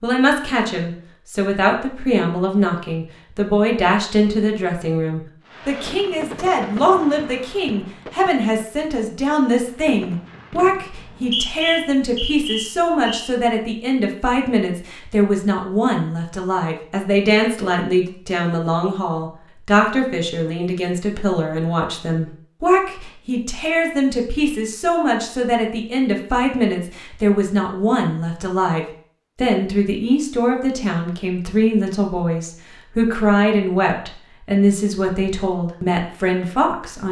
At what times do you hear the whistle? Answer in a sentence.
The whistle can be heard from 10.9 to 13.3 s.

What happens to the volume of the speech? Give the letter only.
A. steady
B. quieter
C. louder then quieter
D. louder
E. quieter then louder
A.